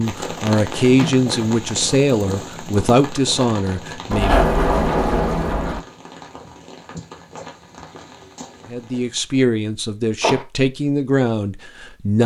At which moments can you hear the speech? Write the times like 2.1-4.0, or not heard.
0.0-4.5, 8.7-12.2.